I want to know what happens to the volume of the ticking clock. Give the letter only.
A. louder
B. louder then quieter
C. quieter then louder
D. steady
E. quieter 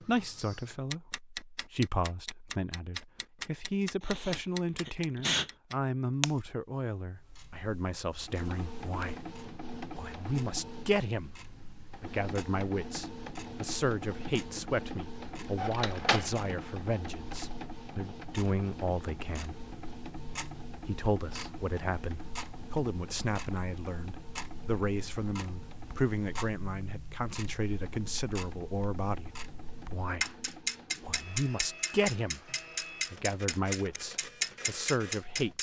C.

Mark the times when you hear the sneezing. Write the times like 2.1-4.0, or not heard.
4.0-5.5.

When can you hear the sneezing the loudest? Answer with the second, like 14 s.
5 s.